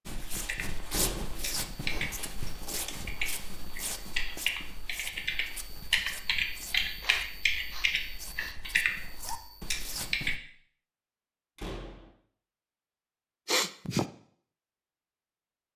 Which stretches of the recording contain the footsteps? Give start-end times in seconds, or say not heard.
0.1-10.4.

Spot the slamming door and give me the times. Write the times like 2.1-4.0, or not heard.
0.9-1.4, 11.6-12.1.